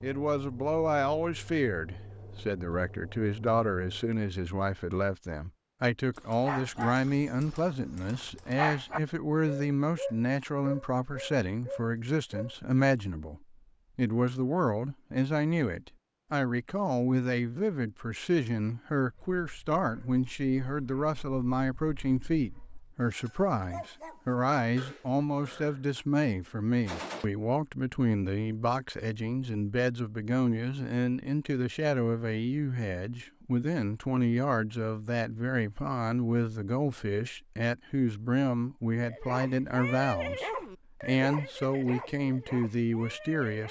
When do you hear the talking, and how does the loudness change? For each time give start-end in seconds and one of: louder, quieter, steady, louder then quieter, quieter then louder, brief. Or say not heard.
0.0-43.6 steady.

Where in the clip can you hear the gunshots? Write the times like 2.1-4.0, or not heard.
26.9-27.3.